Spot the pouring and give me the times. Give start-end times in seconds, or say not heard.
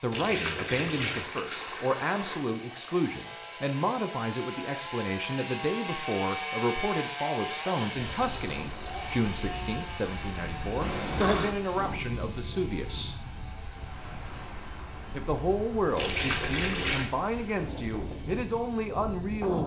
0.1-2.5, 10.8-11.6, 15.9-17.1.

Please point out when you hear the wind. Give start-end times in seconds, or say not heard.
8.1-19.6.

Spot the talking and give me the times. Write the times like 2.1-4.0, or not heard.
0.0-13.2, 15.2-19.6.